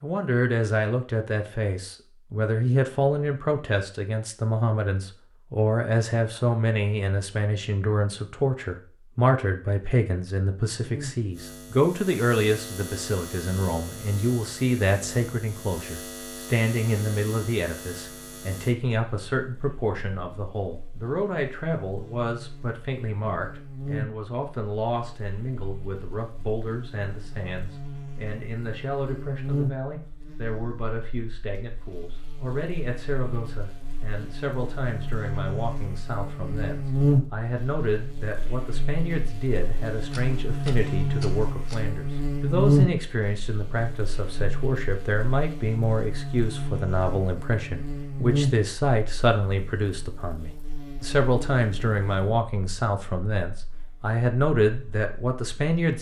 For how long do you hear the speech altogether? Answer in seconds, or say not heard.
56 s.